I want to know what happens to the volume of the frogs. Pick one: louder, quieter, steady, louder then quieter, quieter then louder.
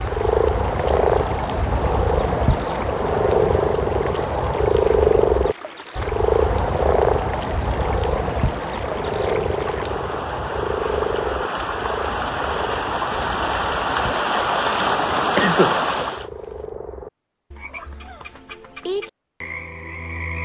quieter.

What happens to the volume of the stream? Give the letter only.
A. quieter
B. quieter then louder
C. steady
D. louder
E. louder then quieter
D.